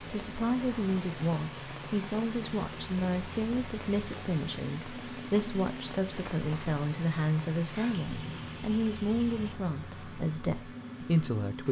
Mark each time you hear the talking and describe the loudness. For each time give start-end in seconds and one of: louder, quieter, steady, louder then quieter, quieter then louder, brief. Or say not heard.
0.0-11.6 steady.